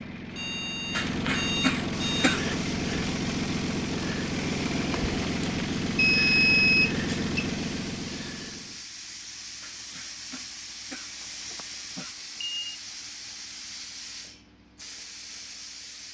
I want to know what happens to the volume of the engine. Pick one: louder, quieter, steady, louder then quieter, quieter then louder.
steady.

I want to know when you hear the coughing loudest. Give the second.
2 s.